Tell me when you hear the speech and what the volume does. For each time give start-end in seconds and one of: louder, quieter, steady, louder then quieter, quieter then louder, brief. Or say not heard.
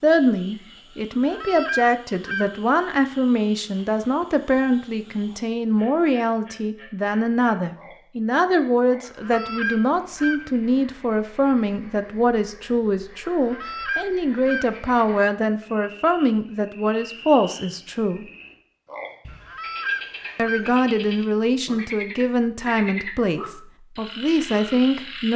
0.0-18.2 steady
20.4-25.3 quieter then louder.